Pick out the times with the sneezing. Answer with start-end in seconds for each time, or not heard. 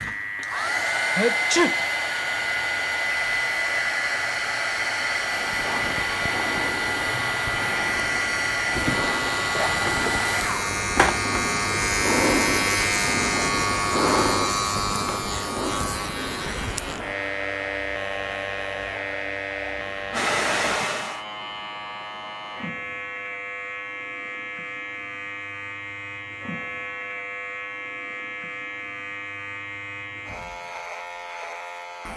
1.1-1.8.